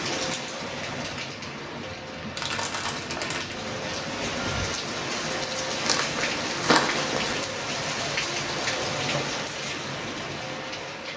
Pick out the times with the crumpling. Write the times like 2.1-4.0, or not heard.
2.4-3.6, 5.8-7.4.